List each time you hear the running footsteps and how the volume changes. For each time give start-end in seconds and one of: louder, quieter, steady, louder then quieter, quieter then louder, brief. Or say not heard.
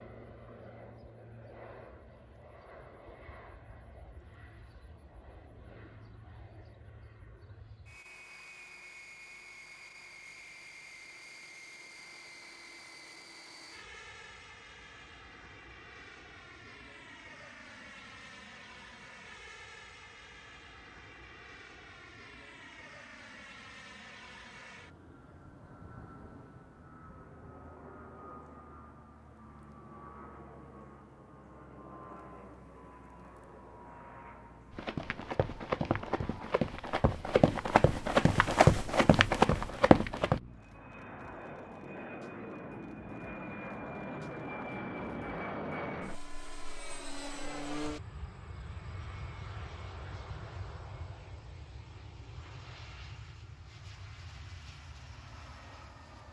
34.7-40.4 louder.